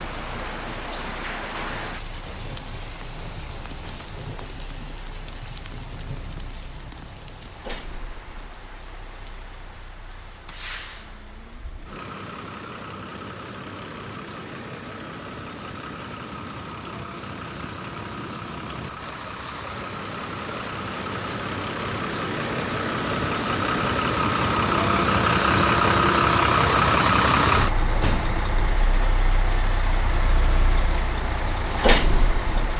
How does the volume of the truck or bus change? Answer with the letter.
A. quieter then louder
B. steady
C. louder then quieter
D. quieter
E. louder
E.